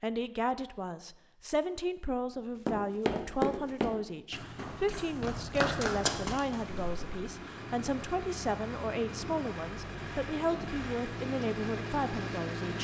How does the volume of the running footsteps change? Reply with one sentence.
The volume of the running footsteps goes down, then up.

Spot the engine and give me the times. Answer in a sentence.
The engine can be heard from 6.5 to 12.8 s.